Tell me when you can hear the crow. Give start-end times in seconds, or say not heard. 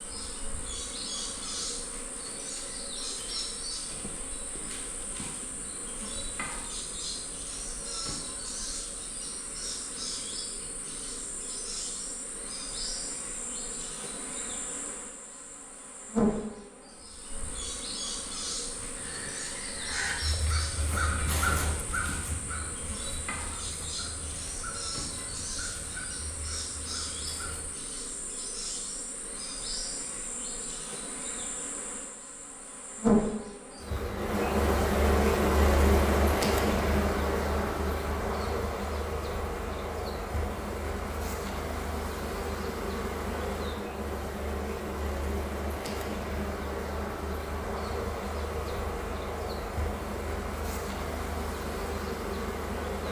18.8-27.8.